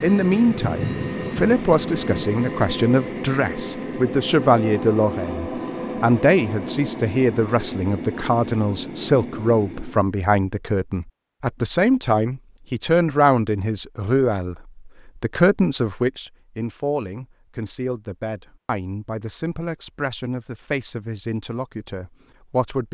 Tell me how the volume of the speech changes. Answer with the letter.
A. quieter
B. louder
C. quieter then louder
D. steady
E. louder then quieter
A.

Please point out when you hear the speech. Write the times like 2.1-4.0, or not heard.
0.0-22.8.